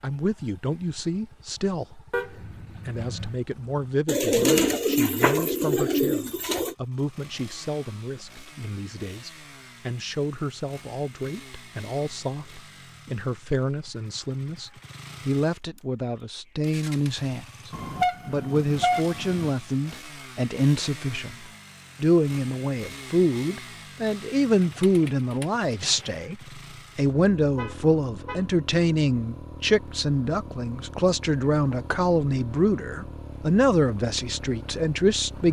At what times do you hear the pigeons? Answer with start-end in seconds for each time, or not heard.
4.0-6.8, 24.6-26.2.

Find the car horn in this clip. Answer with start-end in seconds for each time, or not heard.
2.1-3.4, 17.7-19.5, 27.6-28.4.